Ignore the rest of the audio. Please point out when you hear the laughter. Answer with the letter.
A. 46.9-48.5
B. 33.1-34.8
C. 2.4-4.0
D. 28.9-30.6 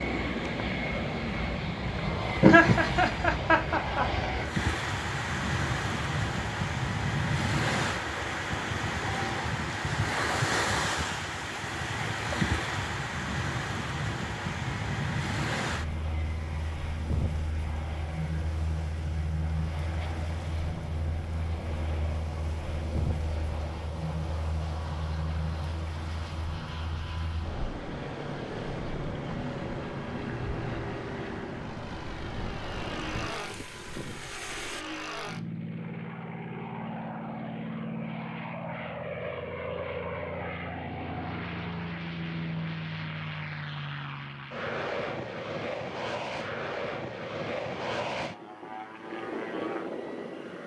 C.